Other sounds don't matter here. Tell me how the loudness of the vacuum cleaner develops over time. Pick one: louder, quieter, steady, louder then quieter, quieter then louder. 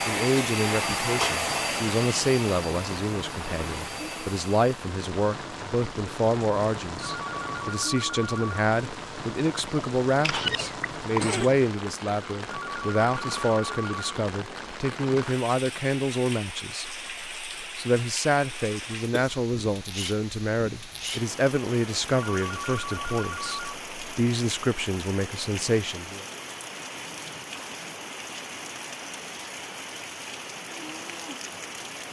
quieter.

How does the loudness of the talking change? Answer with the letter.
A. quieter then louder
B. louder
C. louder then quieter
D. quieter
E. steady
E.